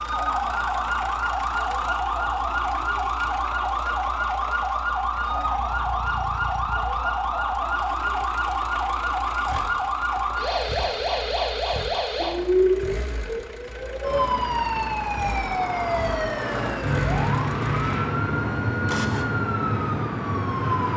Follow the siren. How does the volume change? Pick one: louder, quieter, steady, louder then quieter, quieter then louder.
steady.